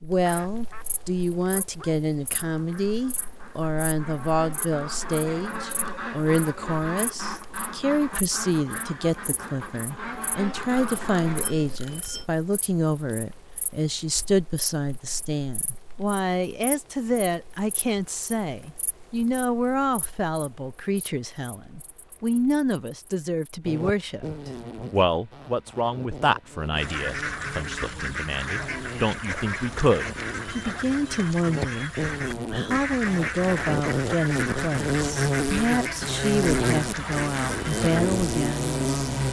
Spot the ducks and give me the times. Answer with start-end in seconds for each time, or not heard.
0.2-11.6, 26.7-38.1.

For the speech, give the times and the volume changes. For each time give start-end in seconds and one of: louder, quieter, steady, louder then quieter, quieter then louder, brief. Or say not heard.
0.0-39.2 steady.